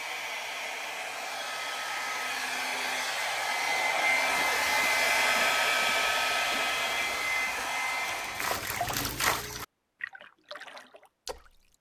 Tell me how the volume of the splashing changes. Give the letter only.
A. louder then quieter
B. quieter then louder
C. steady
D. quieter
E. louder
A.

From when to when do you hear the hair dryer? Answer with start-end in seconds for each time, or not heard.
0.0-8.6.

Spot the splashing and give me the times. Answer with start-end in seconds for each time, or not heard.
4.2-11.7.